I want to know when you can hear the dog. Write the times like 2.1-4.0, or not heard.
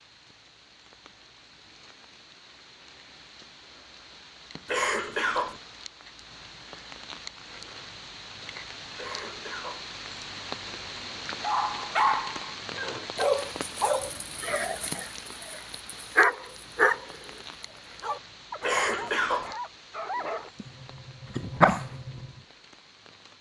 11.4-22.4.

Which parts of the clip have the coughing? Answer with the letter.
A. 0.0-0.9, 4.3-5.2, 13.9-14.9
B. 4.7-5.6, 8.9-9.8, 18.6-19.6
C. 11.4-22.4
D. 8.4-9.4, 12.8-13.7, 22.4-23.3
B.